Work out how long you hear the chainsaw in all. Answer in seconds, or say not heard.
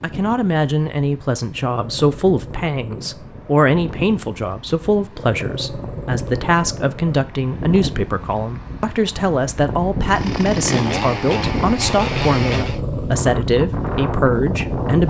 3 s.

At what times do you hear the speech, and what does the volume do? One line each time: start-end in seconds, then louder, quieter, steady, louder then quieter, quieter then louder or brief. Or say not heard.
0.0-15.0 steady.